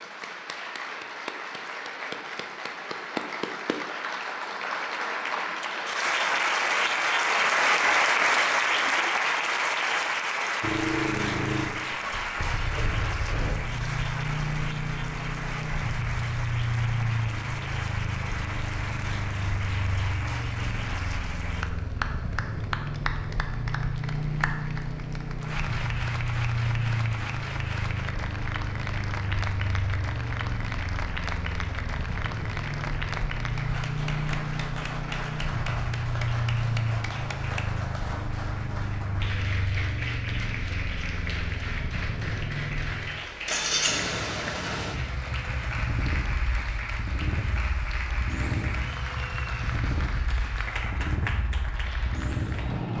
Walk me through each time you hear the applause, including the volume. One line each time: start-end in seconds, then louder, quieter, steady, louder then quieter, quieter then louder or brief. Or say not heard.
0.0-52.9 quieter.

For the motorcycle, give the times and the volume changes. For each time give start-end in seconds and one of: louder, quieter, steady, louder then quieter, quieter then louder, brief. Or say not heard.
10.6-52.9 steady.